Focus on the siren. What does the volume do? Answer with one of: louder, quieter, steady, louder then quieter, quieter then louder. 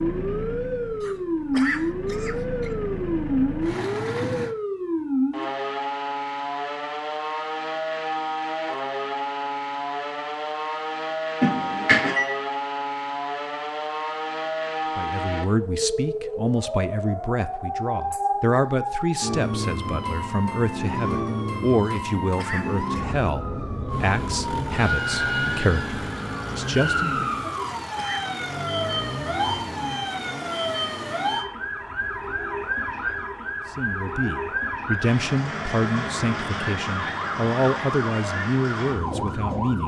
steady.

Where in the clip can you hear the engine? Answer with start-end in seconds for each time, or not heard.
0.0-4.5, 23.9-31.4.